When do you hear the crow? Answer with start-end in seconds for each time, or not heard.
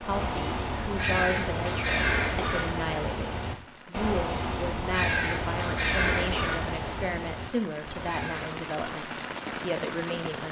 0.0-8.6.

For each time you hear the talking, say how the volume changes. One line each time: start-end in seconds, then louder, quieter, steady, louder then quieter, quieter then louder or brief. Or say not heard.
0.0-10.4 steady.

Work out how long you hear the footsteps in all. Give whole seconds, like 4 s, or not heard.
not heard.